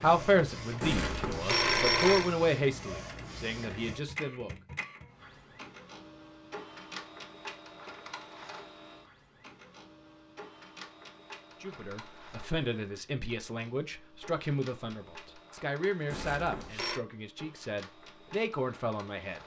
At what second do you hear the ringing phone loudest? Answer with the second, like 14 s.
2 s.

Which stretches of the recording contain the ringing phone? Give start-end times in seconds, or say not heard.
0.8-2.3, 16.1-17.0.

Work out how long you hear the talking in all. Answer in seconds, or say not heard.
12 s.